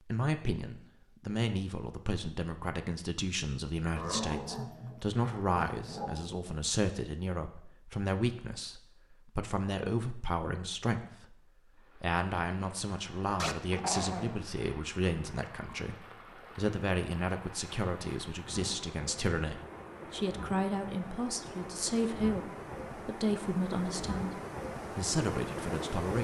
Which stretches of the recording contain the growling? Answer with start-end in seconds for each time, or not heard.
4.0-6.4, 13.3-14.3.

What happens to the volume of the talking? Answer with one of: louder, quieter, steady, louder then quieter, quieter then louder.
steady.